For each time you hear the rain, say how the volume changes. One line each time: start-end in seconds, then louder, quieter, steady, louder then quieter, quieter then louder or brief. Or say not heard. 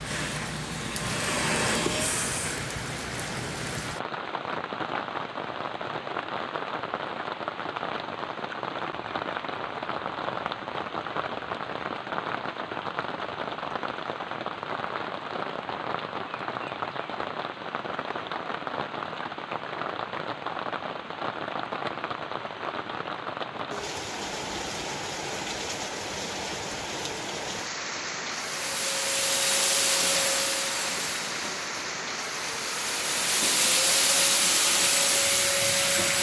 0.0-36.1 steady.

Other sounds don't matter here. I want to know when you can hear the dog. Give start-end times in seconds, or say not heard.
not heard.